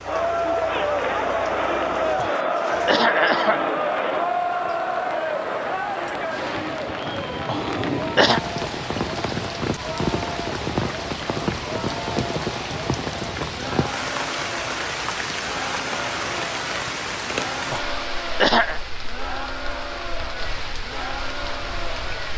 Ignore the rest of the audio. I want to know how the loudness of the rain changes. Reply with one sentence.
The loudness of the rain goes up, then down.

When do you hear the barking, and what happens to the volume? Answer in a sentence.
You can't hear the barking here.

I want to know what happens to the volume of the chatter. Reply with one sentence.
The volume of the chatter goes down.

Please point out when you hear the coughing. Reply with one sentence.
You can hear the coughing from 2.1 to 3.6 s, from 7.5 to 8.4 s and from 17.7 to 18.8 s.